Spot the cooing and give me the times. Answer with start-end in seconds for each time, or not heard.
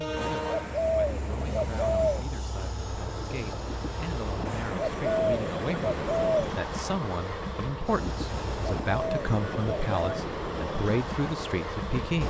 0.1-2.2, 4.5-6.5, 8.2-10.2.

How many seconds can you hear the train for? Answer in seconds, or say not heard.
12 s.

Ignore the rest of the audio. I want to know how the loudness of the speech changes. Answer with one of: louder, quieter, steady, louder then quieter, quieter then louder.
louder.